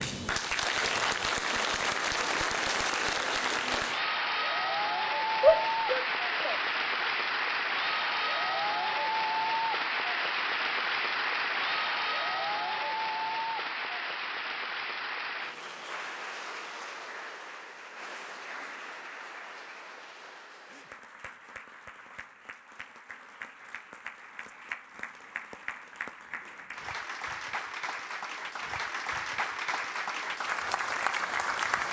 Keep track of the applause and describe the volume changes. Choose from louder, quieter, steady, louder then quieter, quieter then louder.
quieter then louder.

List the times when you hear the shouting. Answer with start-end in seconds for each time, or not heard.
5.4-7.1.